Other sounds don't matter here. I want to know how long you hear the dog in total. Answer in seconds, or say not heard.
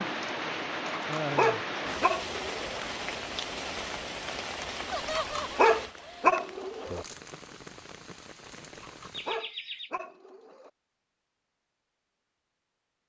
6 s.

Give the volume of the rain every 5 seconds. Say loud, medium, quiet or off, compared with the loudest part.
loud, medium, off.